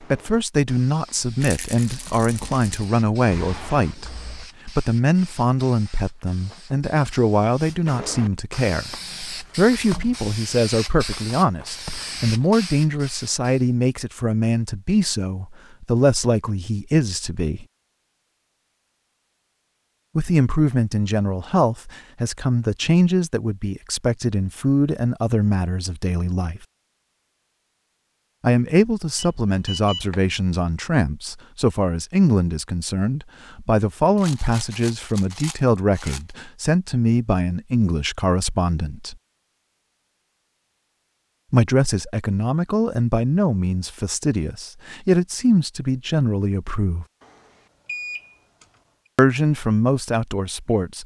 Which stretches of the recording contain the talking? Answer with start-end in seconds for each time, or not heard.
0.1-8.9, 9.6-17.6, 20.1-26.6, 28.4-39.1, 41.5-47.0, 49.1-51.0.